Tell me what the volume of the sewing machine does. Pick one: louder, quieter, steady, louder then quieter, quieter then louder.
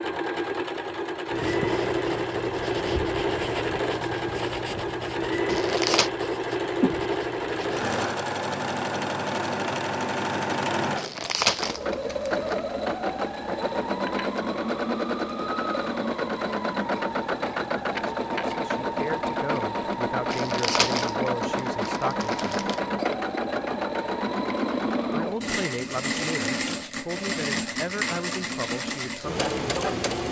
steady.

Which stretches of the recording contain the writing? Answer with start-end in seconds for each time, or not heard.
1.2-8.0.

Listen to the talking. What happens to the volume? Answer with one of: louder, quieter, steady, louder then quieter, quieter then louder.
steady.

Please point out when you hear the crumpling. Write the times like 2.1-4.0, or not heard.
5.5-6.1, 10.9-12.6, 20.3-22.8.